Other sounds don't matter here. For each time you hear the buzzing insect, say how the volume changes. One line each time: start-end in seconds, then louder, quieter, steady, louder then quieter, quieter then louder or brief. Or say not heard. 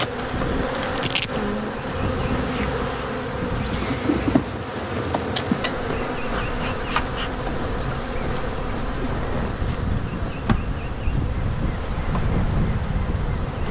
0.0-13.6 quieter.